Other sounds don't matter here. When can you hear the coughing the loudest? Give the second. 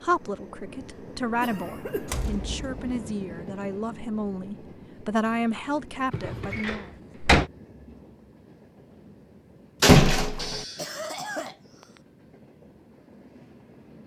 11 s.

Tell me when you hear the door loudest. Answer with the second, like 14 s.
10 s.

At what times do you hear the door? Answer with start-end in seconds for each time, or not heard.
2.0-2.9, 6.4-7.5, 9.8-10.6.